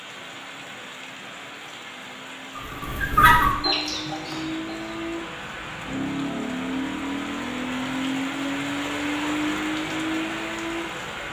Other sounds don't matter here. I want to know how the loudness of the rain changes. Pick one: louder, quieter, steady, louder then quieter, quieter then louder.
louder.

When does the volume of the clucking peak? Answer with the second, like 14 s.
3 s.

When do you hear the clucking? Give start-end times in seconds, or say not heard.
2.5-5.0.